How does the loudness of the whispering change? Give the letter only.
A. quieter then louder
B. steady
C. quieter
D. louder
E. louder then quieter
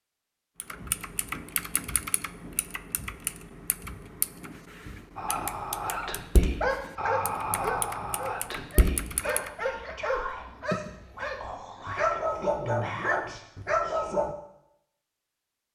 C.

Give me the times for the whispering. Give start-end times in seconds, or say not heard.
5.2-14.2.